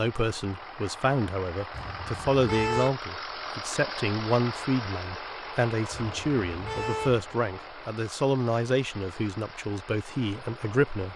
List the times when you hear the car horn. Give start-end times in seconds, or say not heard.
1.7-3.0, 5.9-7.2.